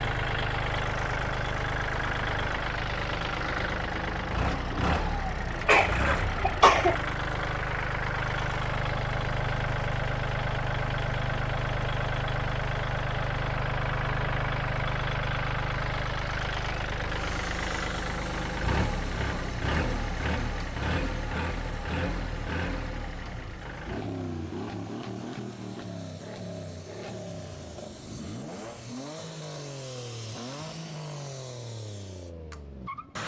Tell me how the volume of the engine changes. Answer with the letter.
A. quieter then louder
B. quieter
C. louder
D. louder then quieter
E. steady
B.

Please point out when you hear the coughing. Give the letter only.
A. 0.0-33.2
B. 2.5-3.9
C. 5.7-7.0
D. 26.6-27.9
C.